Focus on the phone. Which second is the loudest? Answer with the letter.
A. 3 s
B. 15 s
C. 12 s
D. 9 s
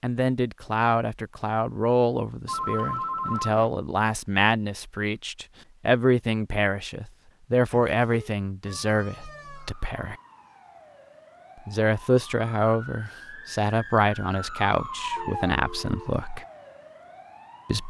A.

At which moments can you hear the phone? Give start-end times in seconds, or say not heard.
2.5-3.7, 7.7-8.3, 15.2-16.1.